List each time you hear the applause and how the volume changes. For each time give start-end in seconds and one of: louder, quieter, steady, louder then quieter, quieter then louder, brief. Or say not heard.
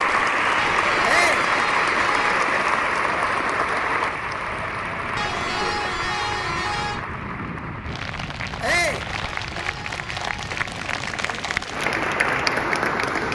0.0-13.3 quieter then louder.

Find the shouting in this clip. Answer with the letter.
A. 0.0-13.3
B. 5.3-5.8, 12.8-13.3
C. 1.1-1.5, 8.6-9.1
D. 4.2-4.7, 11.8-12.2
C.